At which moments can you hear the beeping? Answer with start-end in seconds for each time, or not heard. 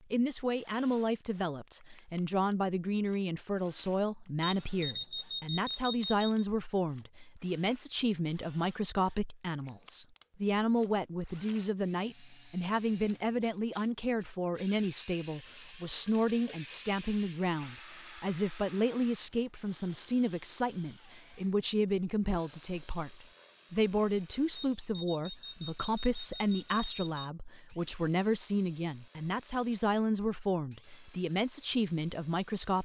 4.4-6.3, 24.6-27.3.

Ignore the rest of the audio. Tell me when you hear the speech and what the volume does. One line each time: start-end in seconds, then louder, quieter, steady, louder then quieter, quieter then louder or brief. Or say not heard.
0.1-32.7 steady.